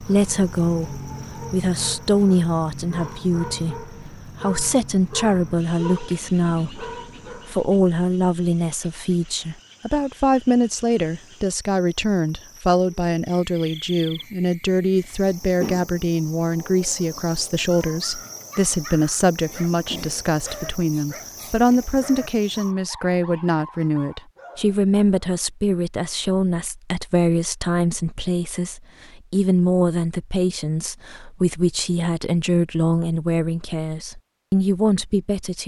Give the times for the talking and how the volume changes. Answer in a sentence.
The talking can be heard from 0.0 to 35.6 s, at a steady volume.